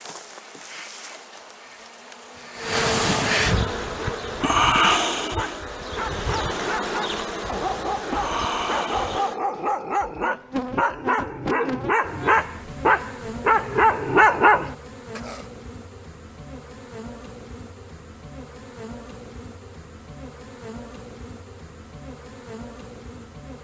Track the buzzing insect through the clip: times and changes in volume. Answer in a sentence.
You can hear the buzzing insect from 0.0 to 23.5 s, getting quieter.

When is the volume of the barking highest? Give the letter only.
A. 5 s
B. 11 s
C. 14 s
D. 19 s
C.